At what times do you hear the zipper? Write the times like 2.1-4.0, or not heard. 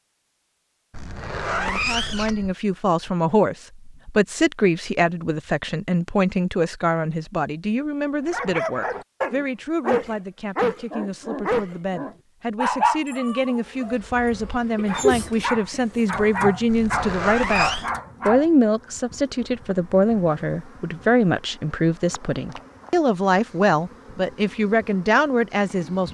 0.9-2.5, 16.6-17.9.